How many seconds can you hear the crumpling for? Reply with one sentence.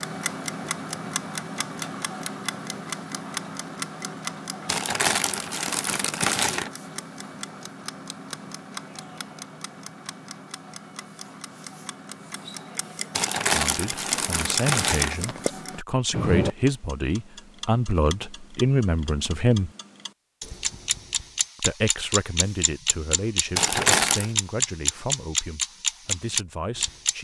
You can hear the crumpling for 5 seconds altogether.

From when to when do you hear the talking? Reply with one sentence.
The talking can be heard from 13.5 to 19.7 s and from 21.6 to 27.1 s.